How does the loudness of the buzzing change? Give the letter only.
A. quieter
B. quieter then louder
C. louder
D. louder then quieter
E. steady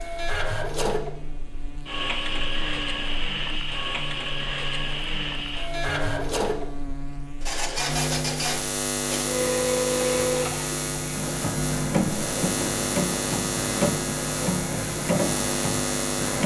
C.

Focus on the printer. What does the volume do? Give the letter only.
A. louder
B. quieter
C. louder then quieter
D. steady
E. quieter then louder
D.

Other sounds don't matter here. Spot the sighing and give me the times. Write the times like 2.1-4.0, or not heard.
not heard.